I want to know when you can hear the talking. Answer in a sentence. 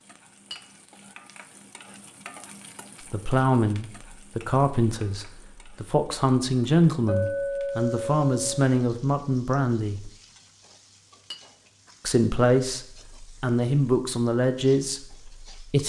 The talking can be heard from 3.1 to 10.1 s and from 12.1 to 15.8 s.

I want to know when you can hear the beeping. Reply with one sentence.
You can't hear the beeping here.